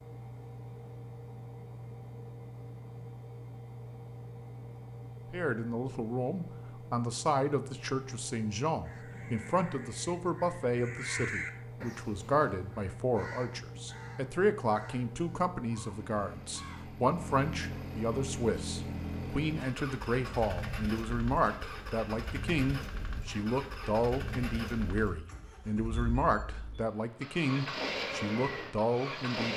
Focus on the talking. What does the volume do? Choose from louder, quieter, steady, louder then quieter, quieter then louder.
steady.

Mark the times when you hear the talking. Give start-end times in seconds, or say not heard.
5.3-29.5.